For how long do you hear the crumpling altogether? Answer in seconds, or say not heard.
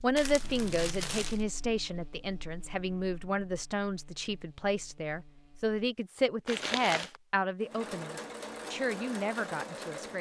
2 s.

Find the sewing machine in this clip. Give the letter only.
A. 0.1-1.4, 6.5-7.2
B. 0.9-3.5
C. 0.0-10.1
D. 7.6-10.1
D.